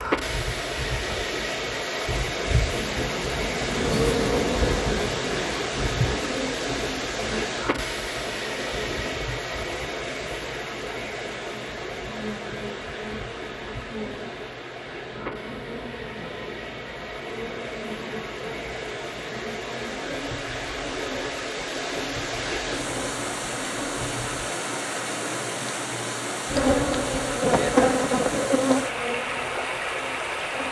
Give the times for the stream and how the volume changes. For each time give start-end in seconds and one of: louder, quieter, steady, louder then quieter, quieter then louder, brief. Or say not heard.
0.0-30.6 quieter then louder.